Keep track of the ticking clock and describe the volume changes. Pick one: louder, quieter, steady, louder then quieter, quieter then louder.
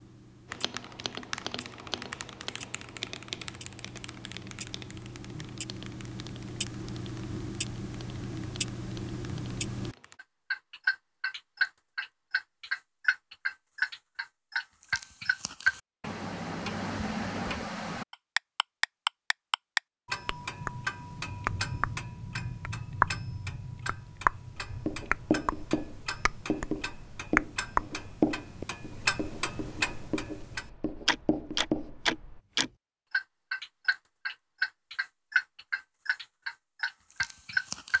louder.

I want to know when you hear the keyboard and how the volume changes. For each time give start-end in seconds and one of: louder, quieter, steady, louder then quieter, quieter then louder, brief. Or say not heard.
0.5-10.2 quieter.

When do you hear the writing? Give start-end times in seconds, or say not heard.
24.6-32.4.